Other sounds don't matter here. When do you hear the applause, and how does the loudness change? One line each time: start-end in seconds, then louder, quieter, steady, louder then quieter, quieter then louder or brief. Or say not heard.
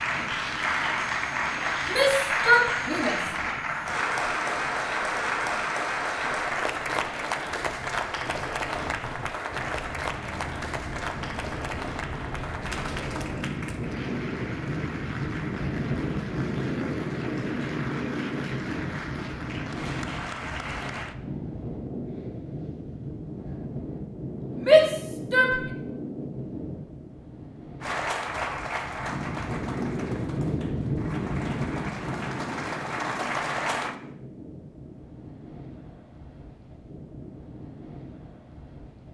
0.0-21.1 quieter
27.8-34.0 quieter then louder.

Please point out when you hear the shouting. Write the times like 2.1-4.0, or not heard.
1.9-3.2, 24.6-25.6.